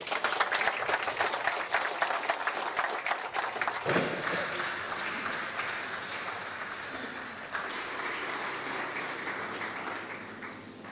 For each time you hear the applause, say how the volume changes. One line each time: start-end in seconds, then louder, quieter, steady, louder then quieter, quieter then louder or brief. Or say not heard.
0.0-10.8 quieter.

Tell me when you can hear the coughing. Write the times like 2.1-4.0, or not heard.
4.0-4.5.